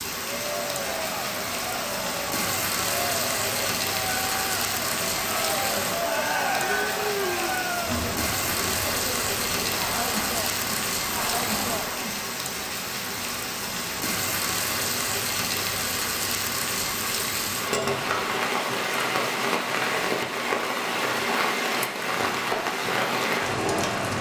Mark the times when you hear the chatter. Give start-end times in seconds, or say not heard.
0.1-12.3.